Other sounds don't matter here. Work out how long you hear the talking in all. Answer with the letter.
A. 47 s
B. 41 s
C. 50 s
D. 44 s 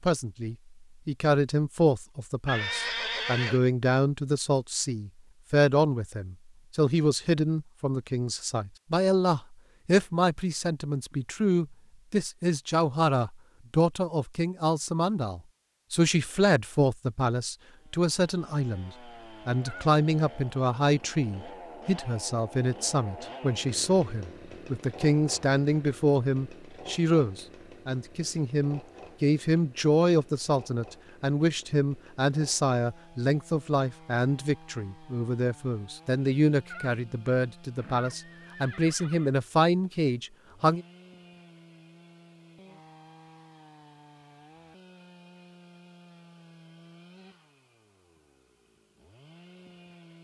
B.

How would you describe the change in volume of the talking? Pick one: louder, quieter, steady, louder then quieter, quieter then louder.
steady.